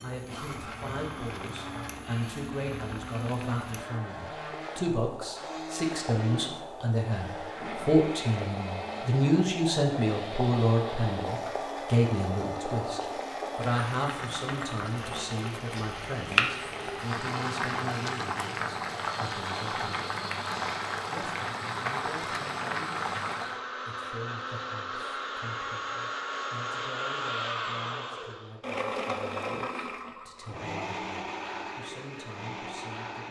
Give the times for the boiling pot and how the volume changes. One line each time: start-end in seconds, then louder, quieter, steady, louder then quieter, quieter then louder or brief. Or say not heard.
0.0-23.6 louder.